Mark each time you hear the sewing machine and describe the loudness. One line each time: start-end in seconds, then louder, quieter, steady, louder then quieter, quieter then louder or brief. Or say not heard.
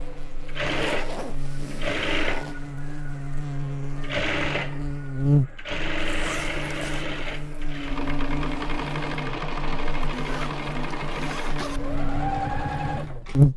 0.0-13.4 steady.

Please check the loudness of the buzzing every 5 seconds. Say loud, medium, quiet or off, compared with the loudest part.
medium, loud, loud.